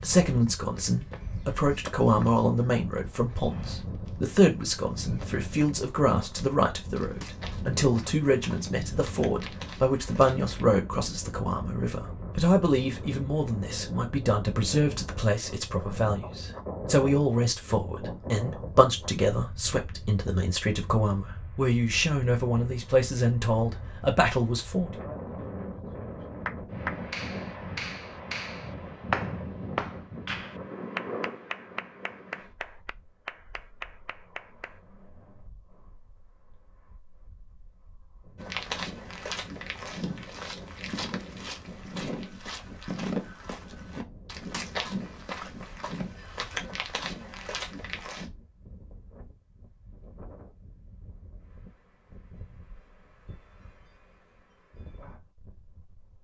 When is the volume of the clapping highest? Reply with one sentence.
The loudest moment of the clapping is at 29 seconds.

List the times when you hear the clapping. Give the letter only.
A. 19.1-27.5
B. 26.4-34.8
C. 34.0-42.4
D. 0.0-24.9
B.